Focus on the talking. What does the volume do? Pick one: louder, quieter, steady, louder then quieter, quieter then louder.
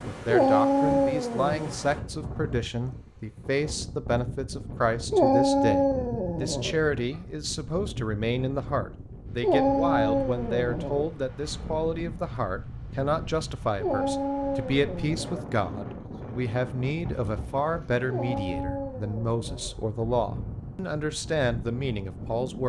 steady.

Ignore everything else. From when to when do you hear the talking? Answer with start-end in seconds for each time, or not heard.
0.1-22.6.